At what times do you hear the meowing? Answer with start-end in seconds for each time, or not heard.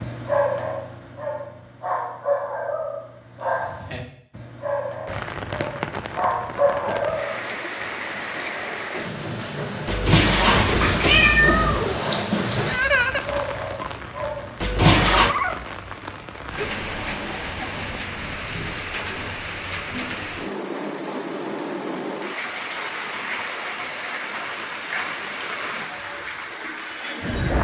9.8-12.0, 14.6-15.3.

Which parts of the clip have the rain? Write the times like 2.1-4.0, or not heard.
5.0-27.5.